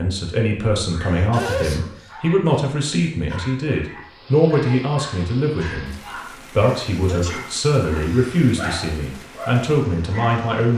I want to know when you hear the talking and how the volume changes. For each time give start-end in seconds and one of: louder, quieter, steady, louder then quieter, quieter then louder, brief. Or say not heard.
0.0-10.7 steady.